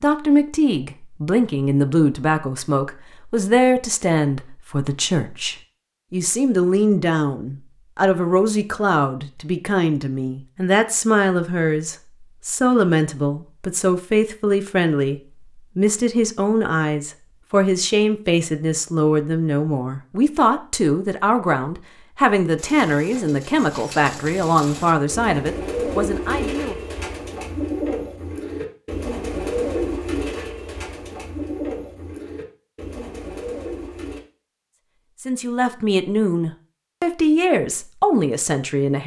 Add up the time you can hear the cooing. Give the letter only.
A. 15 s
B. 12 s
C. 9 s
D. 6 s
B.